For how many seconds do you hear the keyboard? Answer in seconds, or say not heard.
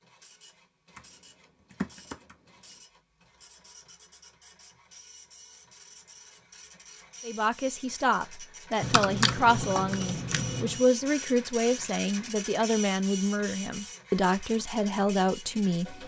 4 s.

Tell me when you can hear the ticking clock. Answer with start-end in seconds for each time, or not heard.
not heard.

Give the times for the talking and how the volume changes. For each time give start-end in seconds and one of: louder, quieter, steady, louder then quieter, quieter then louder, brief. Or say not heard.
7.2-16.0 steady.